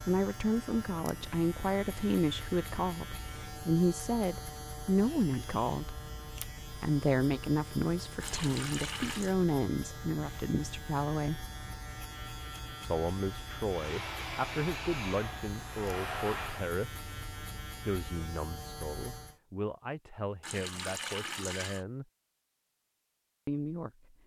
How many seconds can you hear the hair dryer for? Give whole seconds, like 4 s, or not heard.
3 s.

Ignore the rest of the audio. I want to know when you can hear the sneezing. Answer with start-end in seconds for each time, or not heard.
not heard.